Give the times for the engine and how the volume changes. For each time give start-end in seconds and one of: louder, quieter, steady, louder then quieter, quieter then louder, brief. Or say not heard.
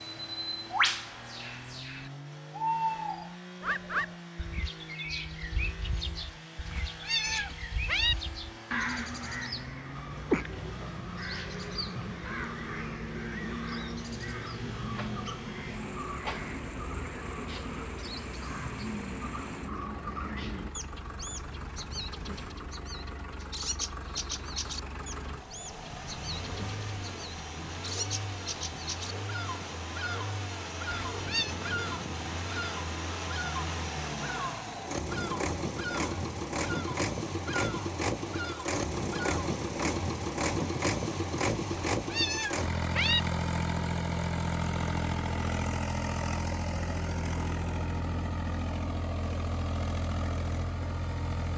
0.0-51.5 louder.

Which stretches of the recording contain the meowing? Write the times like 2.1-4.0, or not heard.
6.7-8.2, 30.9-31.6, 42.0-43.2.